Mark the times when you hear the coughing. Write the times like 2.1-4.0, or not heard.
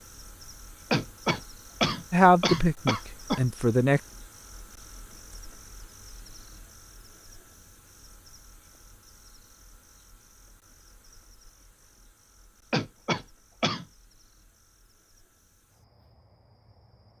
0.9-3.4, 12.7-13.8.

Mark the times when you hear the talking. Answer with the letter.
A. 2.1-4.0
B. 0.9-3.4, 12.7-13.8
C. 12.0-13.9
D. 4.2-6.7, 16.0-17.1
A.